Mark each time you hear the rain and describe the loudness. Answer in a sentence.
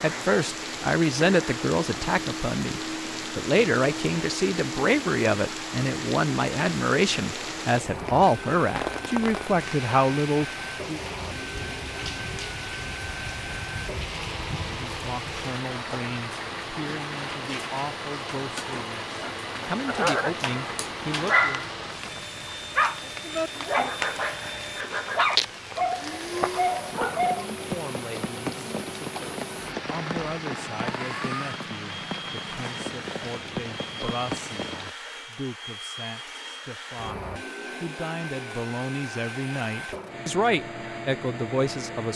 You can hear the rain from 0.0 to 34.9 s, at a steady volume.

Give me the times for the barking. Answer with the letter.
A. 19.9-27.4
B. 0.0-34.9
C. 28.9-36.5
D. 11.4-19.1
A.